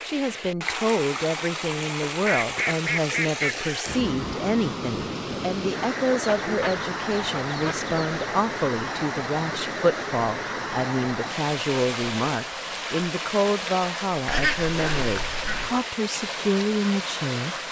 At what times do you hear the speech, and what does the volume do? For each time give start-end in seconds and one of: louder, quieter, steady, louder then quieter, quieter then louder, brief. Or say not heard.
0.0-17.6 steady.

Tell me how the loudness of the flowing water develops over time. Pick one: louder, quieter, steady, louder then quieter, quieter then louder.
steady.